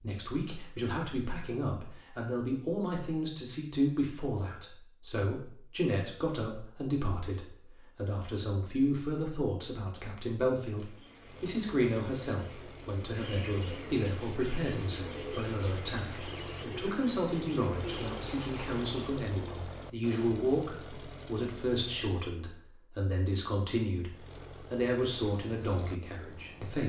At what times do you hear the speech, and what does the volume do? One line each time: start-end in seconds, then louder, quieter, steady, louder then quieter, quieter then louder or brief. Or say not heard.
0.0-26.8 steady.